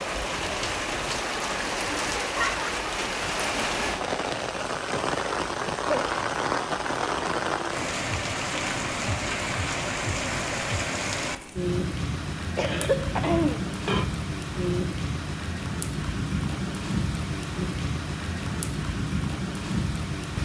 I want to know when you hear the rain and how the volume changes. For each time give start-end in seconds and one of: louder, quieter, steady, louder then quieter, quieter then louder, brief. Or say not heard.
0.0-20.3 steady.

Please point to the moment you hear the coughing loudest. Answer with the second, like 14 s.
13 s.